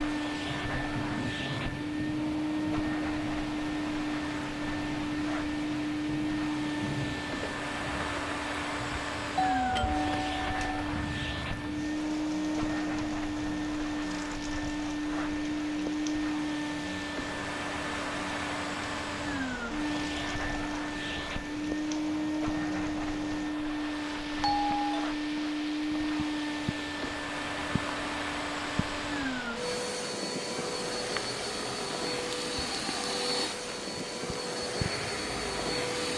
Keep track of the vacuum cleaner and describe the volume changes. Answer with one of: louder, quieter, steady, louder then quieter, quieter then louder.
steady.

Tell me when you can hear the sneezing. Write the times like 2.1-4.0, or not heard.
not heard.